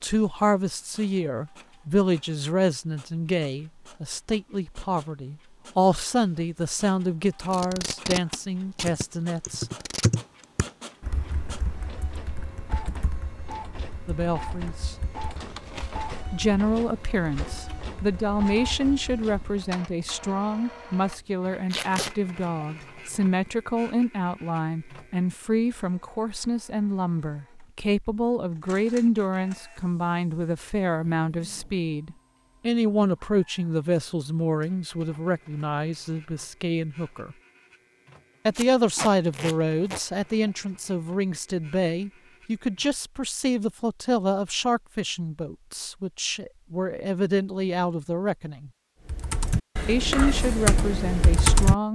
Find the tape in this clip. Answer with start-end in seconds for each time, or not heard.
7.5-10.1, 21.7-22.1, 38.5-40.0.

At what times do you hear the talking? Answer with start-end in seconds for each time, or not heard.
0.0-9.7, 14.1-14.9, 16.3-37.4, 38.5-48.7, 49.9-51.9.